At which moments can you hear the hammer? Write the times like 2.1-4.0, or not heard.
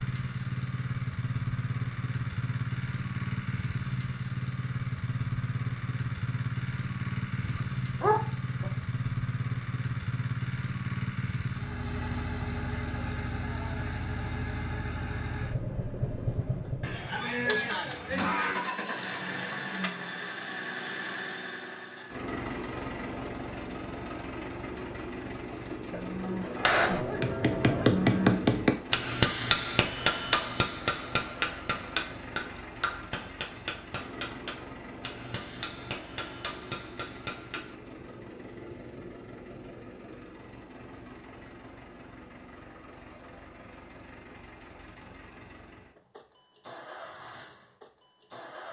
26.4-37.8.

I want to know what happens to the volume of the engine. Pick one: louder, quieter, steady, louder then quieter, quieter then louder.
quieter.